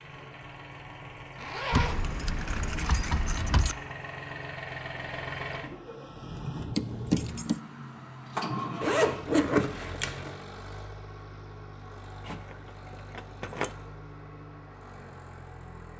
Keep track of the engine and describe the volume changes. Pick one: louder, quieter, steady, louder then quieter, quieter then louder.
louder then quieter.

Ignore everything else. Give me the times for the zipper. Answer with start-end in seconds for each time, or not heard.
1.4-2.0, 8.8-10.3.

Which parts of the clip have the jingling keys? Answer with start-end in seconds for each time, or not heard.
1.7-3.8, 6.8-7.6, 12.2-13.8.